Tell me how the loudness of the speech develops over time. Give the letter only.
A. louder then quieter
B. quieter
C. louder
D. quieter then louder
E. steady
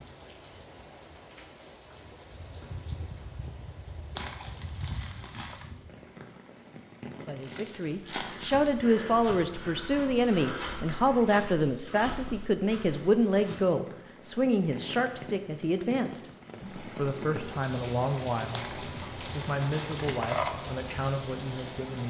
B.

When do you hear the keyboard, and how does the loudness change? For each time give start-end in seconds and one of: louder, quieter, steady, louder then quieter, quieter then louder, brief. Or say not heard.
not heard.